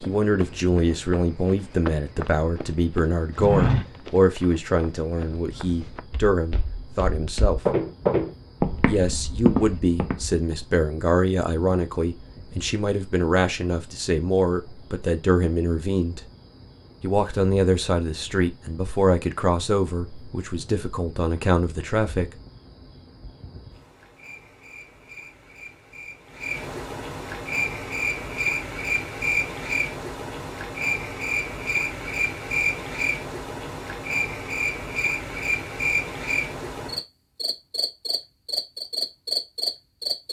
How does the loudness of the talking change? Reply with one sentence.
The volume of the talking stays about the same.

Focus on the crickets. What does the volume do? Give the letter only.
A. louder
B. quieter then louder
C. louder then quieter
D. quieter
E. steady
A.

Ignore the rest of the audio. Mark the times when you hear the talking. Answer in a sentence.
The talking can be heard from 0.0 to 7.8 s, from 8.8 to 16.2 s and from 17.0 to 22.3 s.